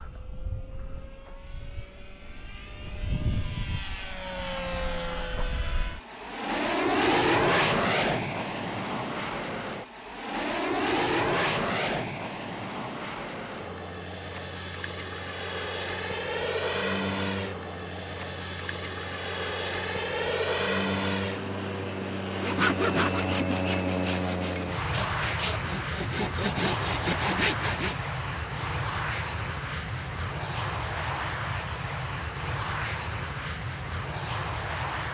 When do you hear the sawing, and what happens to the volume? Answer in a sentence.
The sawing can be heard from 22.4 to 27.9 s, getting quieter then louder.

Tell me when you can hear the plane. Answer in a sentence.
The plane can be heard from 0.0 to 35.0 s.